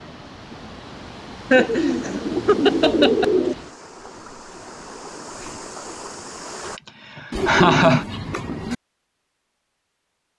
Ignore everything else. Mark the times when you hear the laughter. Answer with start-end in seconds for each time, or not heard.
1.5-3.2, 6.8-8.1.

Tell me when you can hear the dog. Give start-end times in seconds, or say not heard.
not heard.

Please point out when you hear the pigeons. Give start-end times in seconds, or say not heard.
1.5-3.5, 7.3-8.8.